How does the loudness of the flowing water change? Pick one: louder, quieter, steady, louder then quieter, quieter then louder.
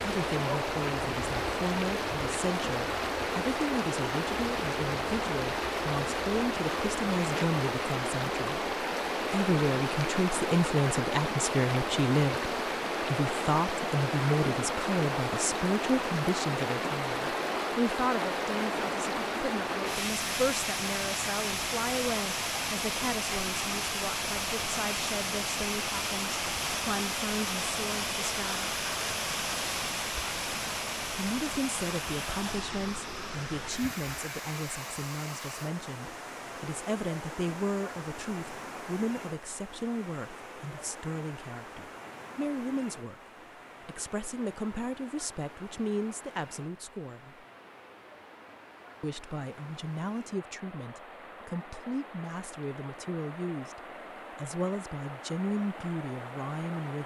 quieter.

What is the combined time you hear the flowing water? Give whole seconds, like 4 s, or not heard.
57 s.